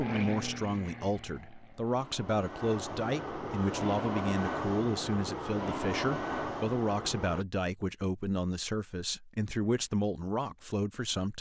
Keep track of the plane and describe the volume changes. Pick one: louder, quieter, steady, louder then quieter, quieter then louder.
louder.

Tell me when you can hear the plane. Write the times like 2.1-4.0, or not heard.
0.0-7.5.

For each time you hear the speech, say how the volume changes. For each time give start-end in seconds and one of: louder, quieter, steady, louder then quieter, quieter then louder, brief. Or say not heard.
0.0-11.3 steady.